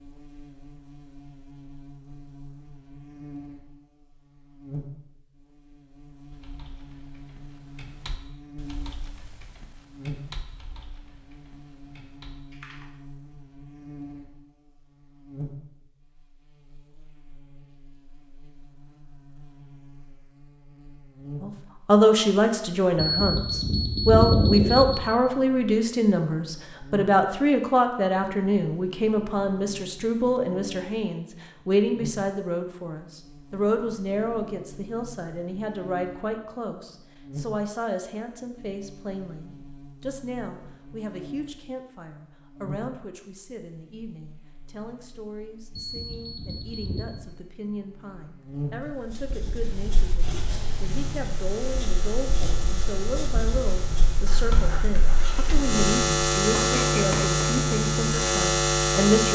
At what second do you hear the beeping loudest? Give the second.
24 s.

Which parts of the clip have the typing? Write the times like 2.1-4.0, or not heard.
6.3-12.8.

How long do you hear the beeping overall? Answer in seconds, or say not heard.
3 s.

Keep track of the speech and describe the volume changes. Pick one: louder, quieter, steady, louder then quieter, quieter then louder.
quieter then louder.